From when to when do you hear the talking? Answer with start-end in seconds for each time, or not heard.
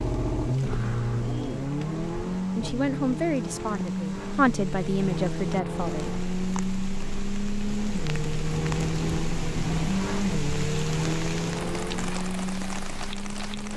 2.5-6.1.